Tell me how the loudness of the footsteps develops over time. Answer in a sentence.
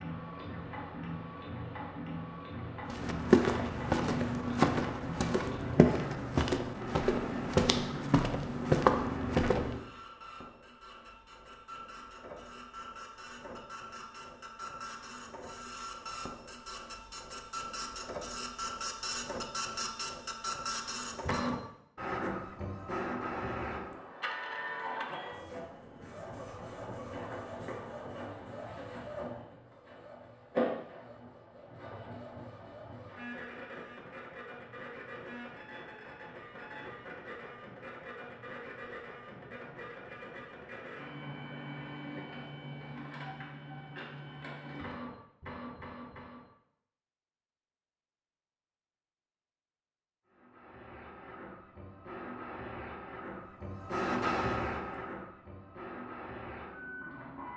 The volume of the footsteps stays about the same.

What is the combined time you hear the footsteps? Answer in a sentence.
You can hear the footsteps for 7 seconds altogether.